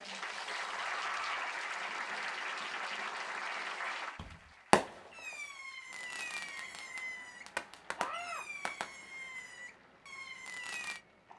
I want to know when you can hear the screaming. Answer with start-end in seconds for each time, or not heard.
0.7-1.4, 8.0-8.4.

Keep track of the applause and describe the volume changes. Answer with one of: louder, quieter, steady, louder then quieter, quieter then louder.
quieter.